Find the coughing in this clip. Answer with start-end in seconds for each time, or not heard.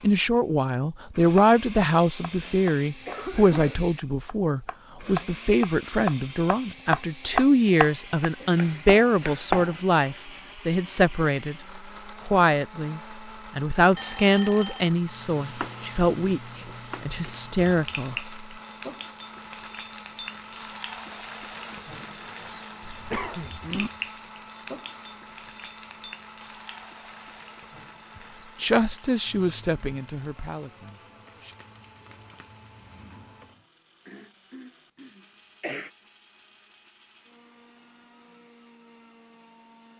2.4-3.9, 22.8-23.9, 34.0-35.9.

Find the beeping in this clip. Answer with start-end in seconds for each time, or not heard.
13.9-14.9.